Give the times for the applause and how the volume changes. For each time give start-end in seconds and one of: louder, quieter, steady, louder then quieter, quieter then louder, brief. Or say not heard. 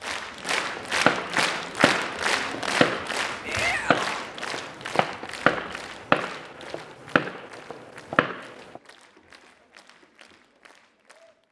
0.0-11.4 quieter.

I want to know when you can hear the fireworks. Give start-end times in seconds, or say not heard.
0.8-8.8.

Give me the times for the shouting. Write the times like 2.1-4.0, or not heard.
3.4-4.2.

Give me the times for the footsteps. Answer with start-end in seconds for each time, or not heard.
not heard.